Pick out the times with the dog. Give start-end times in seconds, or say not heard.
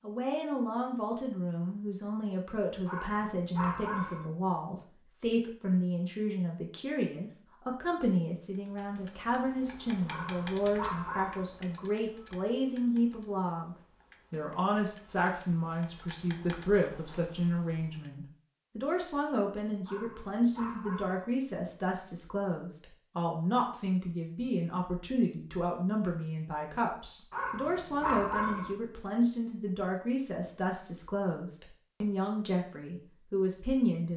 2.9-4.3, 10.1-11.5, 19.9-21.2, 27.3-28.8.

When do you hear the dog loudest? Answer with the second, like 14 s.
28 s.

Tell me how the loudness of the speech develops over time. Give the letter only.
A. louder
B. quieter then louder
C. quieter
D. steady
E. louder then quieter
D.